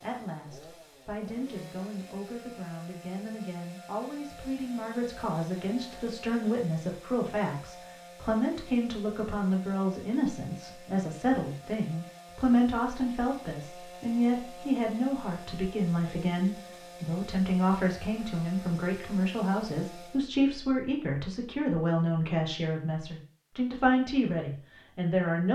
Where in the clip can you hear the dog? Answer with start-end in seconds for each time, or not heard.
not heard.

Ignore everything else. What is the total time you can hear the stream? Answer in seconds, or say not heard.
not heard.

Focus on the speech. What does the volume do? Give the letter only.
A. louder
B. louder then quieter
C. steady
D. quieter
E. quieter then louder
A.